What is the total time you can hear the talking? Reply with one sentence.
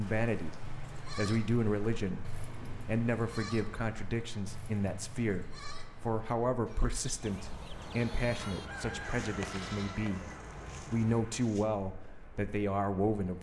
The talking can be heard for 13 seconds in total.